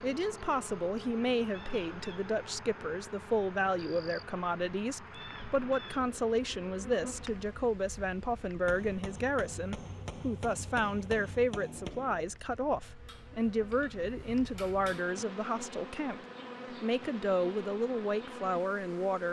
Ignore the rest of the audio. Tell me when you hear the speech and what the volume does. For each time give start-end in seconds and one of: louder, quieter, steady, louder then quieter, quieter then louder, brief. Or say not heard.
0.0-16.2 steady
16.8-19.2 brief.